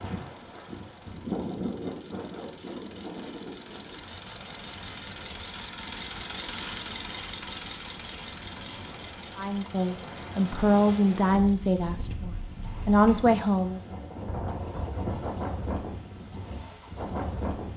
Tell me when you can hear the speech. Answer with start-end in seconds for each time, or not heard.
9.3-13.8.